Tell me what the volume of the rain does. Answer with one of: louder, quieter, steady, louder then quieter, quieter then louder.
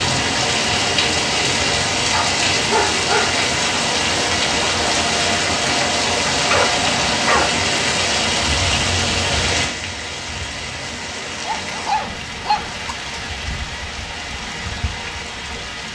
quieter.